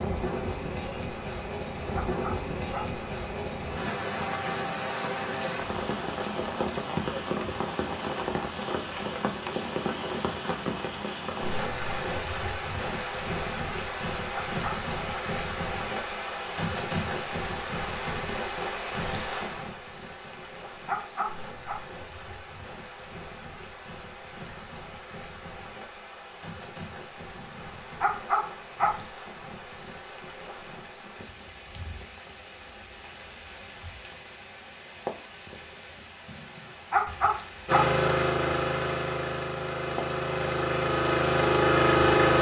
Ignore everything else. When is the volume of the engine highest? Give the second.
42 s.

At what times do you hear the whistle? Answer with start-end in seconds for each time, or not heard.
not heard.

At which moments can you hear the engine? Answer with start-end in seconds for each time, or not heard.
37.6-42.3.